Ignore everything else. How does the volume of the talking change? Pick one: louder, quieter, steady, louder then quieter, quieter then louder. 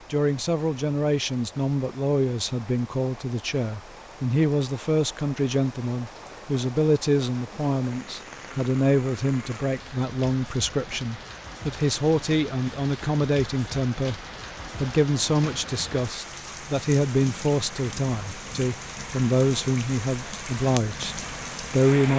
steady.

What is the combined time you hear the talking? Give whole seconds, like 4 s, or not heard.
22 s.